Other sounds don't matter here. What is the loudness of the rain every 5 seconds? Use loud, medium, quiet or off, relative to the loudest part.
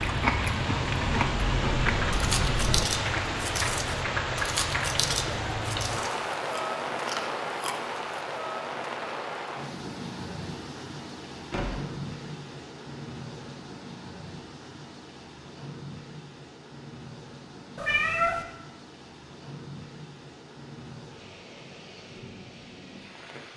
loud, loud, medium, quiet, quiet.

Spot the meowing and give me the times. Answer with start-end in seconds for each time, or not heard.
0.8-2.9, 17.8-18.4.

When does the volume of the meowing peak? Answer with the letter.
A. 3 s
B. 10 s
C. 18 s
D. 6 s
C.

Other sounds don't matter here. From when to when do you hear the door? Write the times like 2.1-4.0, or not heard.
11.5-11.9.